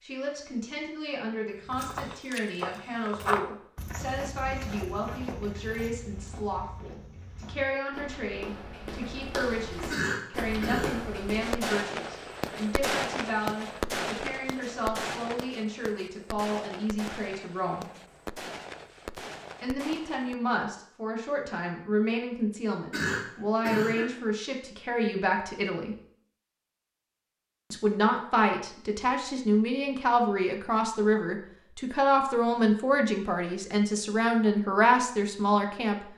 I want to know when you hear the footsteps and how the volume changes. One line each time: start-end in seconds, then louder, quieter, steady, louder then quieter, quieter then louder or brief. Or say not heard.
1.6-11.6 quieter then louder.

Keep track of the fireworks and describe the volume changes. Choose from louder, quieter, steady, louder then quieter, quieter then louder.
quieter.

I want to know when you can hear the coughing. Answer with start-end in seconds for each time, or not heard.
9.9-11.0, 22.9-24.1.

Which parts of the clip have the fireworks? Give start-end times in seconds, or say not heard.
11.4-20.4.